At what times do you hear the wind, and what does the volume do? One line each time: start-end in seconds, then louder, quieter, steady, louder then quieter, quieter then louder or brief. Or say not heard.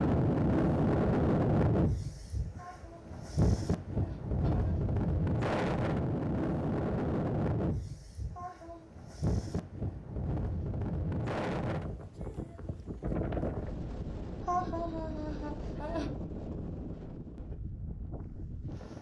0.0-18.9 quieter.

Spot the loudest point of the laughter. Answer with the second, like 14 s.
15 s.